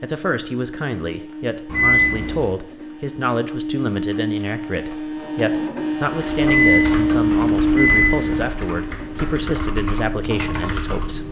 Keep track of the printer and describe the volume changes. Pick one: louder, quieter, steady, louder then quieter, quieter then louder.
louder then quieter.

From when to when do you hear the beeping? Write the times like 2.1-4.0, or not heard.
1.6-2.5, 6.4-8.5.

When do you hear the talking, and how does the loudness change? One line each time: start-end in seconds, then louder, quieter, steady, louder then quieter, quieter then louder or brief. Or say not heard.
0.0-11.2 steady.